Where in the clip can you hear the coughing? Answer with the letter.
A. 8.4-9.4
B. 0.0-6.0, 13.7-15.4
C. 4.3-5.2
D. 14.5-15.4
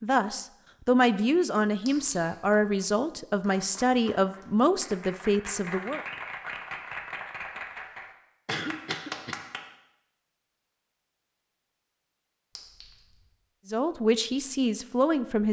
A.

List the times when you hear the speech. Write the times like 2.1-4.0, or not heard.
0.0-6.0, 13.7-15.4.